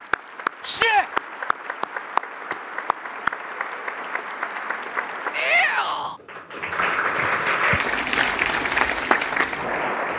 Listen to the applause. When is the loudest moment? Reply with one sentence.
The volume of the applause peaks at 9 seconds.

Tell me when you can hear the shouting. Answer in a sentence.
The shouting can be heard from 0.7 to 1.1 s and from 5.3 to 6.2 s.